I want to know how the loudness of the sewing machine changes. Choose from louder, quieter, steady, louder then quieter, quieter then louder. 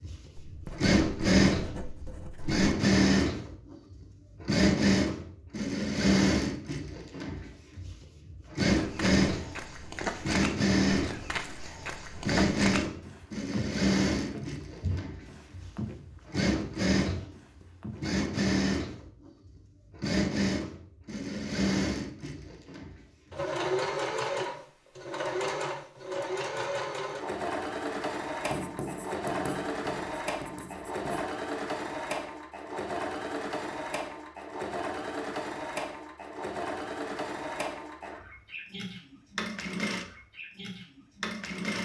quieter.